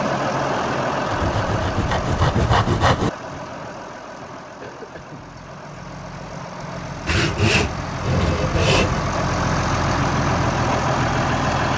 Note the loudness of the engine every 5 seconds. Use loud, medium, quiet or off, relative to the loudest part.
medium, medium, loud.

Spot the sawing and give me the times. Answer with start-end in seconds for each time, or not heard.
1.1-3.1, 7.0-9.0.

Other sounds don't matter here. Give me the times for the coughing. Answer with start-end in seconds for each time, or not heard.
4.6-5.2.